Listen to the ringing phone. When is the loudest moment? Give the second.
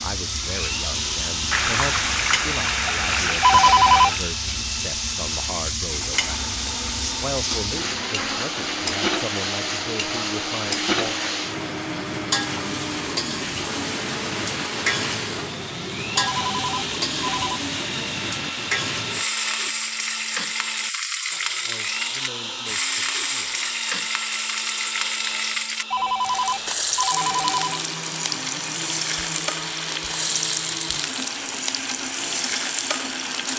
4 s.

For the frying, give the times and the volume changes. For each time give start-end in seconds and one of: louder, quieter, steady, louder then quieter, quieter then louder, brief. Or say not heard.
0.0-33.5 steady.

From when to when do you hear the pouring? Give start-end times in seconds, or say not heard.
1.5-4.2.